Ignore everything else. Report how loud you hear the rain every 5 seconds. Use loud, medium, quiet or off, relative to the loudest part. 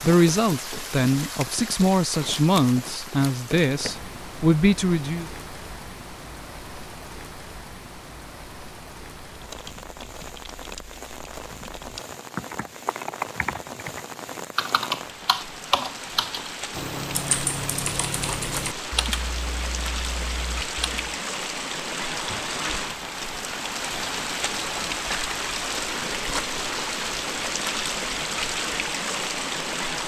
medium, quiet, medium, medium, loud, loud.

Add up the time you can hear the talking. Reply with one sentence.
The talking can be heard for 5 seconds in total.